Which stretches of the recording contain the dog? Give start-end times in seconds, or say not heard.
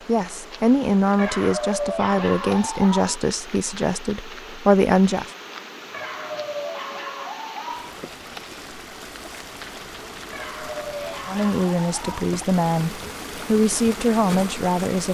1.1-3.2, 5.9-8.0, 10.3-12.3.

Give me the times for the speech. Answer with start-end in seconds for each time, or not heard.
0.1-5.3, 11.2-15.0.